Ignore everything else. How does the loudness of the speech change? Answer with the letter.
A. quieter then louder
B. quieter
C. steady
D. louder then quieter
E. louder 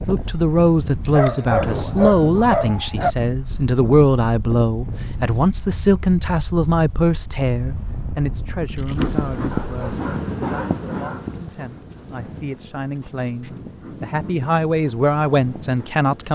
A.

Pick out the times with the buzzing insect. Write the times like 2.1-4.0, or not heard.
8.9-16.2.